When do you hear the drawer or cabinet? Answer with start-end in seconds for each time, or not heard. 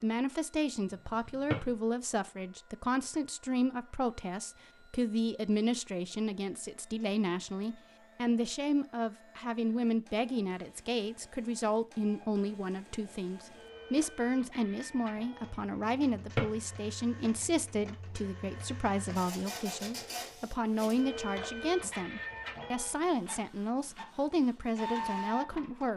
1.2-1.7, 16.1-16.6.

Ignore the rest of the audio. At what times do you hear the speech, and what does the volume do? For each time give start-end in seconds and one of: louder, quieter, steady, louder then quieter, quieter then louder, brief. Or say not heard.
0.0-25.9 steady.